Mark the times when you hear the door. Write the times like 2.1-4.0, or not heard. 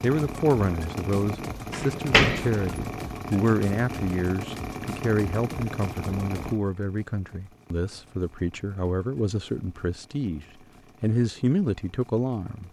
1.7-2.6.